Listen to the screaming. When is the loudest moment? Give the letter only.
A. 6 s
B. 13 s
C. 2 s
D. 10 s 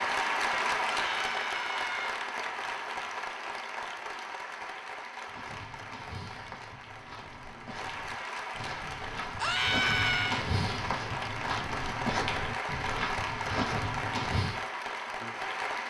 D.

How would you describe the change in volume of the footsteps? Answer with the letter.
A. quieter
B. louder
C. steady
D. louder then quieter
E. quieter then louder
B.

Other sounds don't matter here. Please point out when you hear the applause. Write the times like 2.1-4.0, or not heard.
0.0-15.8.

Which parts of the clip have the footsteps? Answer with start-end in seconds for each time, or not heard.
5.2-14.7.